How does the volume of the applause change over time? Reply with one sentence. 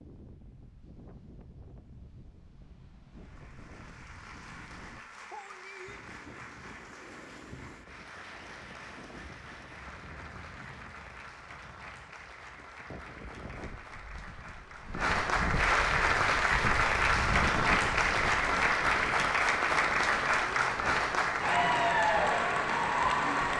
The loudness of the applause goes up.